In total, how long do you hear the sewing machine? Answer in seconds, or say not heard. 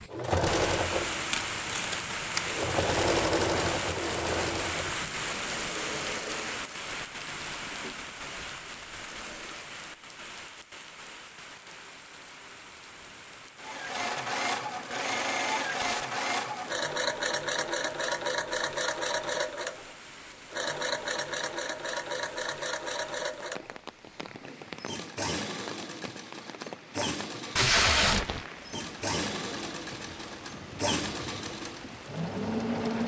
29 s.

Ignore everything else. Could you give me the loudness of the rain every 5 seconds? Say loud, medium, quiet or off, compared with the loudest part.
loud, loud, quiet, quiet, quiet, medium, medium.